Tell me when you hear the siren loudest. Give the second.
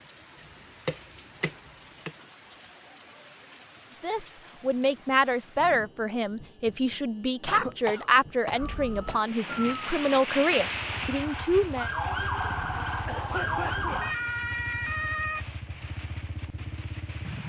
14 s.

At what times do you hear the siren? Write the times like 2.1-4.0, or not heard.
8.6-15.4.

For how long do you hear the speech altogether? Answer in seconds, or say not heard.
8 s.